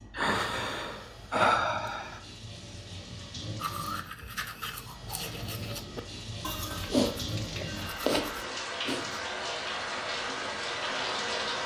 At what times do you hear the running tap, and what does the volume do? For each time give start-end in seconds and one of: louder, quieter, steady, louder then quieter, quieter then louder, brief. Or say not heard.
0.0-11.6 louder.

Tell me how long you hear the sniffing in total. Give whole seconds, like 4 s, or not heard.
4 s.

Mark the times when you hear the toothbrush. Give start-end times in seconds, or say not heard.
3.6-9.2.